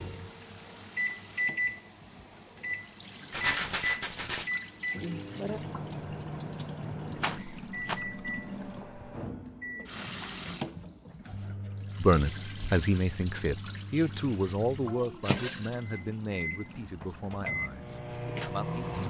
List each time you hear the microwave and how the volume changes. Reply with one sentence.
The microwave can be heard from 0.0 to 19.0 s, getting quieter then louder.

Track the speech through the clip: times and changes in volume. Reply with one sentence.
You can hear the speech from 12.0 to 19.0 s, getting quieter.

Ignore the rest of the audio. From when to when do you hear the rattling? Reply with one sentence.
The rattling can be heard from 3.3 to 4.5 s, from 7.2 to 8.0 s and from 15.2 to 15.8 s.